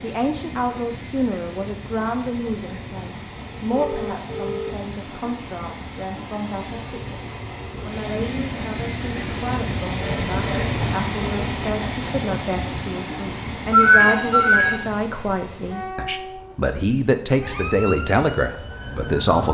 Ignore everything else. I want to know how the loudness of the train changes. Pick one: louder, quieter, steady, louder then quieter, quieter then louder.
louder then quieter.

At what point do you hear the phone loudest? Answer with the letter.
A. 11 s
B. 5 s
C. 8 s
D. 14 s
D.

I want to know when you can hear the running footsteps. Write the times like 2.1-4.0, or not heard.
not heard.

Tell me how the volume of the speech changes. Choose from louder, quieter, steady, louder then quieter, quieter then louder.
quieter then louder.